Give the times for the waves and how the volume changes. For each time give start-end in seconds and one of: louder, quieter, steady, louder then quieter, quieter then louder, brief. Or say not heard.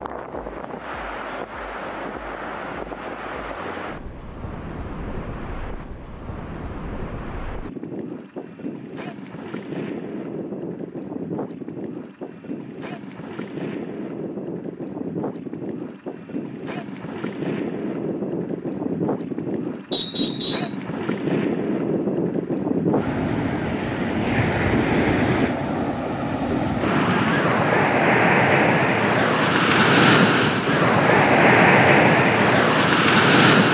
0.0-33.7 louder.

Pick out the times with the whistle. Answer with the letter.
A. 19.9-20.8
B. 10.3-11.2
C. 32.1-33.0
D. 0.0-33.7
A.